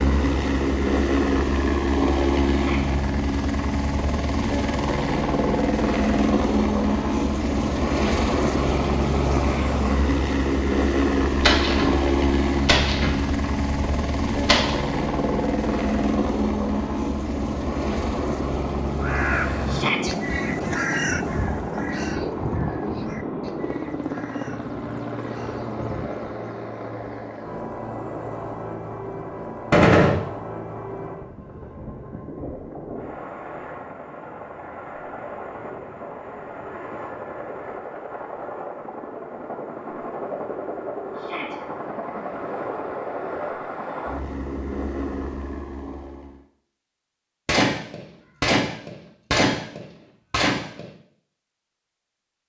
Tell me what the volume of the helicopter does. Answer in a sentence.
The loudness of the helicopter goes down.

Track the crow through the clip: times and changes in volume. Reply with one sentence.
You can hear the crow from 18.9 to 26.2 s, getting quieter.